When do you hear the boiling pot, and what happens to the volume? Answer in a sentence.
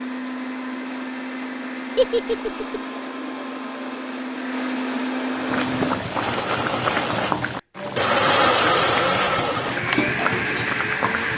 The boiling pot can be heard from 5.3 to 11.3 s, getting quieter then louder.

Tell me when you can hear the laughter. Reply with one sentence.
The laughter can be heard from 1.9 to 2.8 s.